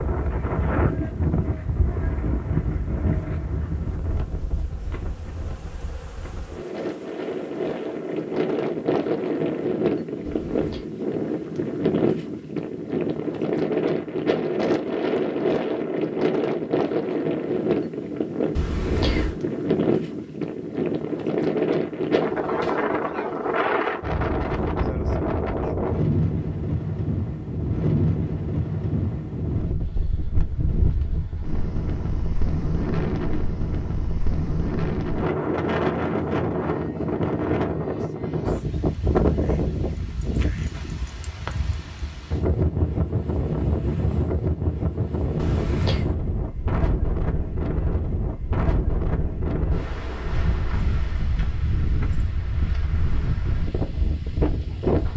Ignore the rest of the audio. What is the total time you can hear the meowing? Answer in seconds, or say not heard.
2 s.